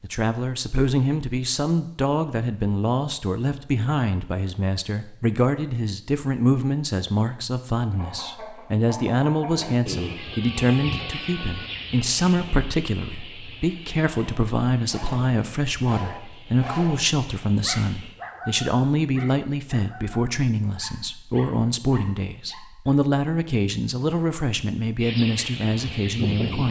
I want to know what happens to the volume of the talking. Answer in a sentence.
The volume of the talking stays about the same.